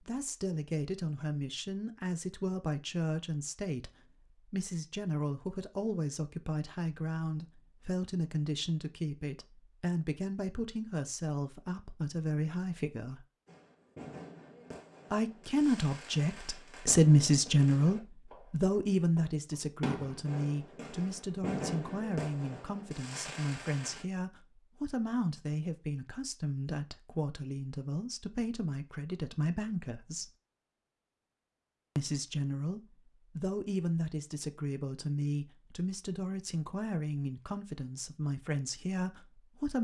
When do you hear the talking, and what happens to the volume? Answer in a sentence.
You can hear the talking from 0.0 to 13.2 s, at a steady volume; from 15.1 to 30.3 s, getting quieter; and from 31.9 to 39.7 s, at a steady volume.